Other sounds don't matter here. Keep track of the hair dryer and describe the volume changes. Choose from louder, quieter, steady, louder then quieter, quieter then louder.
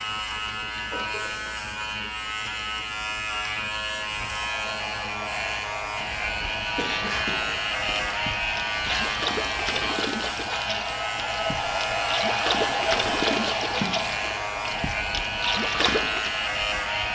louder then quieter.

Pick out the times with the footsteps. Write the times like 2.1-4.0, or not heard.
not heard.